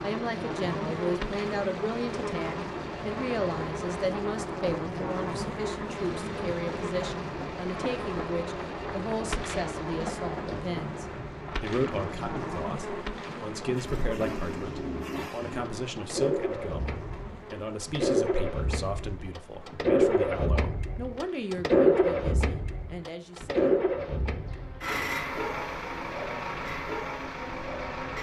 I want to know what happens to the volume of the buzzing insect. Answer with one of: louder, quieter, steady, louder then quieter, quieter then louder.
quieter.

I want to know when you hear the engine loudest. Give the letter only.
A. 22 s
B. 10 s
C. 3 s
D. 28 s
A.